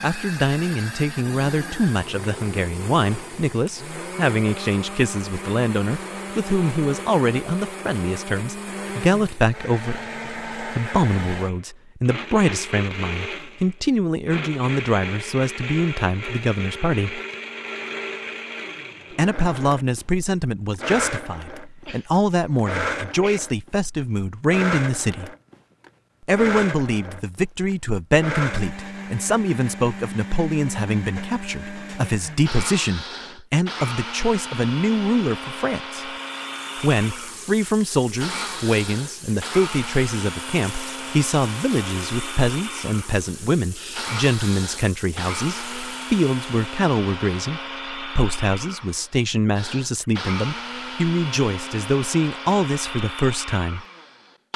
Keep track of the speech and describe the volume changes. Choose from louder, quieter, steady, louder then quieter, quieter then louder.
steady.